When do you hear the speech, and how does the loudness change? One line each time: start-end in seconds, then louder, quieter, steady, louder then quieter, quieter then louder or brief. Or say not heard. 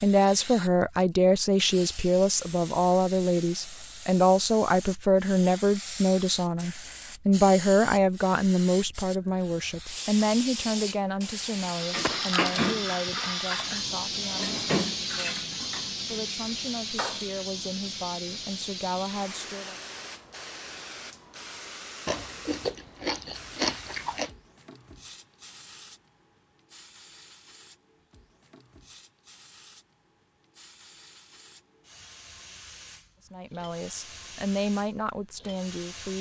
0.0-19.8 quieter
33.3-36.1 brief.